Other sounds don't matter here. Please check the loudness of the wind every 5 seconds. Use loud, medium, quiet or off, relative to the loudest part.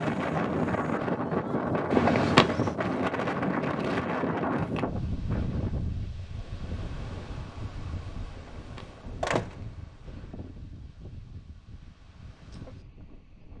loud, medium, quiet.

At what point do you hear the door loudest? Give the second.
2 s.